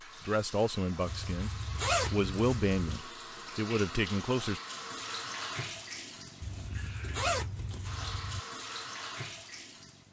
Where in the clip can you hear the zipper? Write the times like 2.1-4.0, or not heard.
1.1-2.8, 6.4-8.4.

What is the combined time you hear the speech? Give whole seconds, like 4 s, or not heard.
4 s.